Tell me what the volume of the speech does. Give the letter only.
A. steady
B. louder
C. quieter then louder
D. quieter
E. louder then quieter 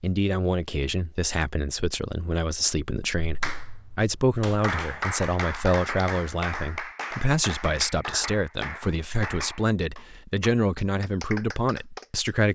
A.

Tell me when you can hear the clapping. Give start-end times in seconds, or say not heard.
3.2-12.3.